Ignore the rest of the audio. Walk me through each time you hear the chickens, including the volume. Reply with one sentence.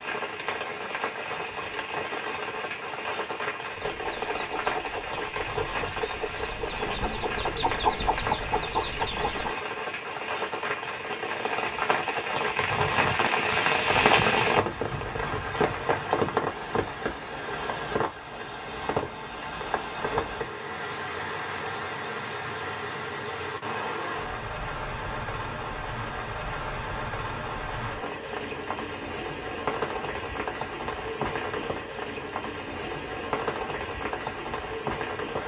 You can hear the chickens from 3.6 to 9.6 s, getting louder.